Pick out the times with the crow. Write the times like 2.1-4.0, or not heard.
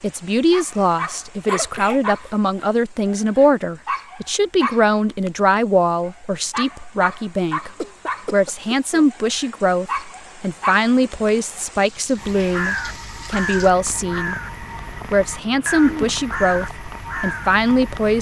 12.2-18.1.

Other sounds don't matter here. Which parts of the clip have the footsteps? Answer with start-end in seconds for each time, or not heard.
not heard.